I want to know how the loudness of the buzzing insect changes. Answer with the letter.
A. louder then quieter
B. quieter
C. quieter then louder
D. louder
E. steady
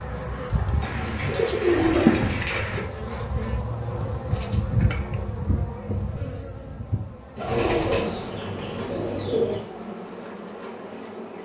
B.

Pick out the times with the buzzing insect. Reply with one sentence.
You can hear the buzzing insect from 0.0 to 11.4 s.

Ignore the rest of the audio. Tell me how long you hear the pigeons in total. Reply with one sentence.
The pigeons can be heard for 4 seconds in total.